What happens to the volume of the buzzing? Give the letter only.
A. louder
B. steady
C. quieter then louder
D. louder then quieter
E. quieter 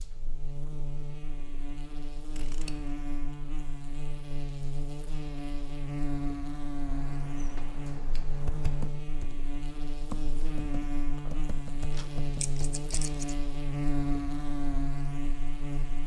A.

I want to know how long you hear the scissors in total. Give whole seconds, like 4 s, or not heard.
4 s.